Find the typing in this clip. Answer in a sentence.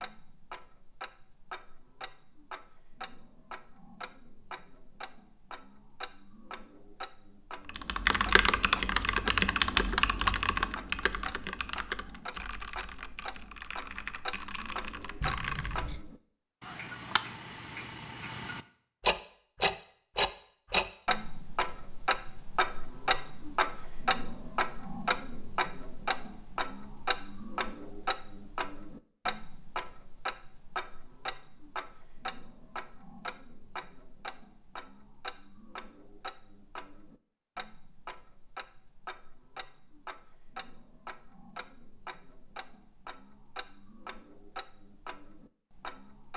The typing can be heard from 7.7 to 15.8 s.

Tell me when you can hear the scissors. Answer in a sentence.
The scissors can be heard from 15.2 to 16.1 s.